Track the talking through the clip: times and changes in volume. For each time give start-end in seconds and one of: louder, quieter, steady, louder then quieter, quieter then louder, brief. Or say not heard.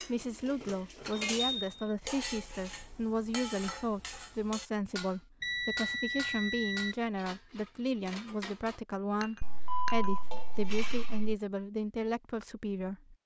0.0-13.2 steady.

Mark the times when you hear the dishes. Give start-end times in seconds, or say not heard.
0.0-11.2.